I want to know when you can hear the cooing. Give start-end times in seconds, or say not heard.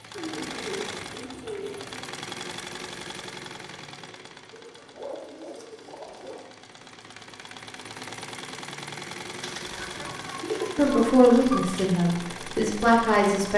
0.1-2.1, 4.5-6.5, 9.4-11.9.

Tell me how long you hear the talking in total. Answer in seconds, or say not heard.
3 s.